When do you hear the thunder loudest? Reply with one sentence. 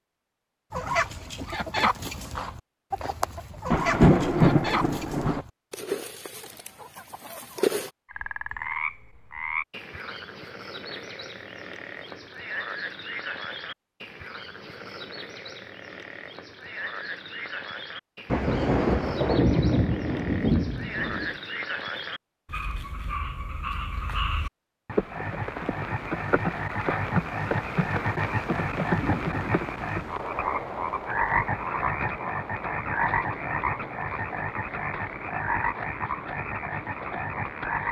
The loudest moment of the thunder is at 4 seconds.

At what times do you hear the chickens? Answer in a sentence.
The chickens can be heard from 0.7 to 7.9 s.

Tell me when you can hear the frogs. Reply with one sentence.
The frogs can be heard from 8.1 to 37.8 s.